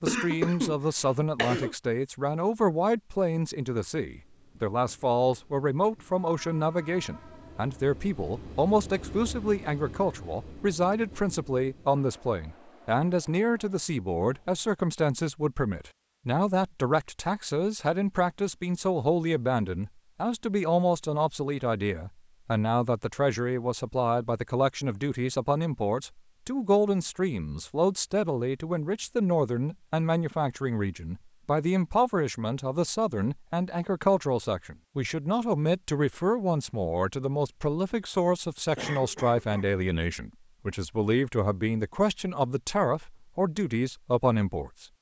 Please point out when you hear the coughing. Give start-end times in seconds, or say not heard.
0.1-1.8, 38.8-39.7.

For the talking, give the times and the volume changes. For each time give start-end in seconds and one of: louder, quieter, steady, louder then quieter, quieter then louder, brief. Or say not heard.
0.0-44.9 steady.